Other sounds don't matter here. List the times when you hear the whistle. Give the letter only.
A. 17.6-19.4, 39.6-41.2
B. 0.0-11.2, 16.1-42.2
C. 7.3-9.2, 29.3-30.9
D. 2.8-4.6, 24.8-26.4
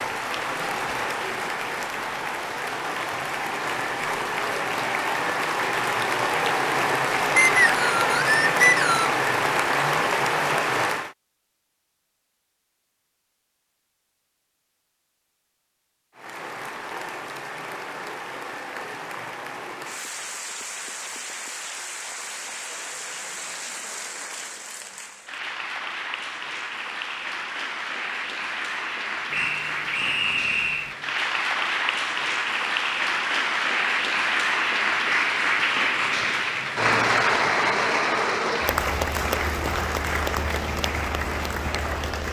C.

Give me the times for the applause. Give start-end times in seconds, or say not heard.
0.0-11.2, 16.1-42.2.